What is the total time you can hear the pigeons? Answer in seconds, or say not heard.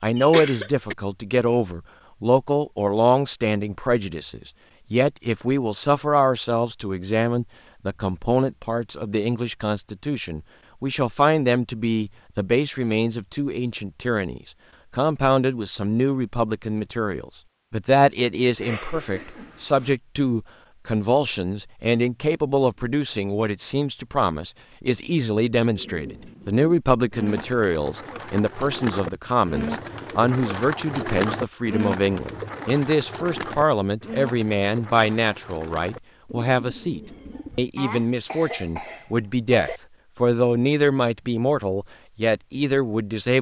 12 s.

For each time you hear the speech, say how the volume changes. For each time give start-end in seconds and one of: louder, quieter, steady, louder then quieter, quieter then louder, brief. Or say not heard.
0.0-43.3 steady.